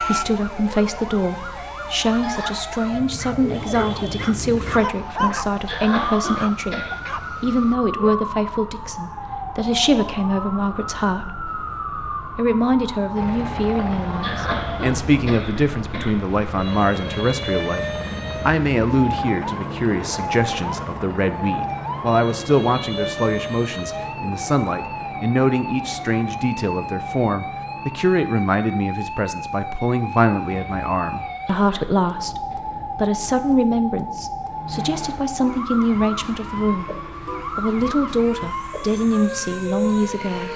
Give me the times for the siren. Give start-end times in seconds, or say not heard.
0.0-40.5.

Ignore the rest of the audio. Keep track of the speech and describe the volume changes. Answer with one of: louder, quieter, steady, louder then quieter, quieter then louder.
steady.